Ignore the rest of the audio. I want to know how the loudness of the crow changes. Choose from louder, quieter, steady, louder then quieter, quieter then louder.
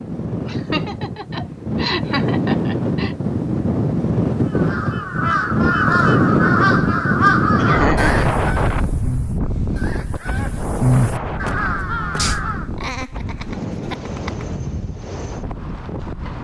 quieter then louder.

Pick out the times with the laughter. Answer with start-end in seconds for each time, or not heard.
0.5-3.1, 7.5-8.3, 12.8-14.4.